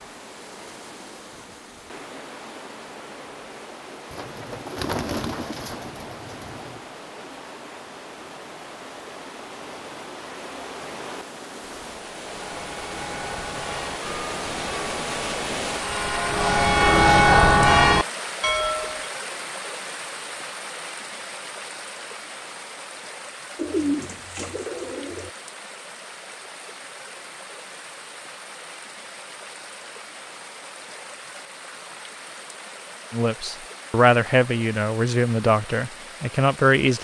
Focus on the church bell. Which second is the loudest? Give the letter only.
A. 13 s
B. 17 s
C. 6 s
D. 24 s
B.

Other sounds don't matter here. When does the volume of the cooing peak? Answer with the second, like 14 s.
24 s.